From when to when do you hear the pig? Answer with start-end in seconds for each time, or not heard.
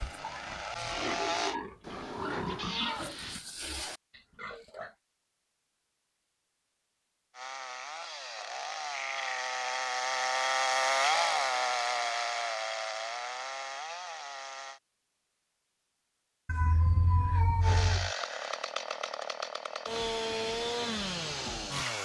0.0-5.0.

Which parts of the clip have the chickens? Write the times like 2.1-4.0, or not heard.
not heard.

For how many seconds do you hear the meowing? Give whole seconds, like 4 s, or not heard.
3 s.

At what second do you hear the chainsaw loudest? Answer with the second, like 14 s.
11 s.